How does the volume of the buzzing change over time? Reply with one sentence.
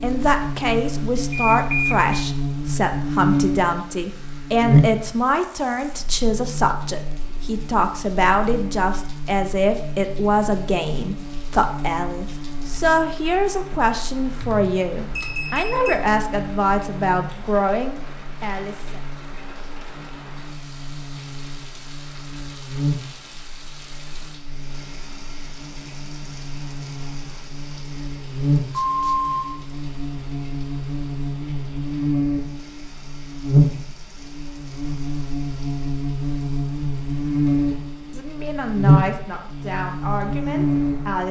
The loudness of the buzzing goes down, then up.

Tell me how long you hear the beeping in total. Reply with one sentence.
You can hear the beeping for 3 seconds altogether.